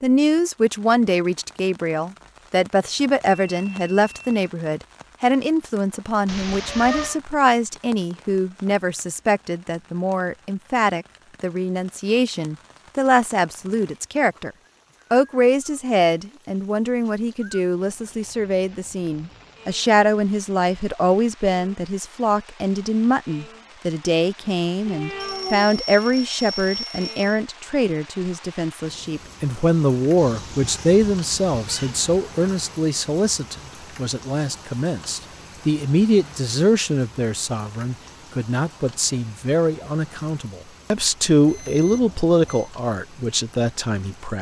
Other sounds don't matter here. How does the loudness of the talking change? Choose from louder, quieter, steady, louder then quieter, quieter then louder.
steady.